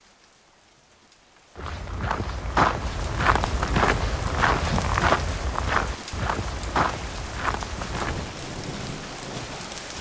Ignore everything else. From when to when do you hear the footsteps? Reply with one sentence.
You can hear the footsteps from 1.6 to 8.3 s.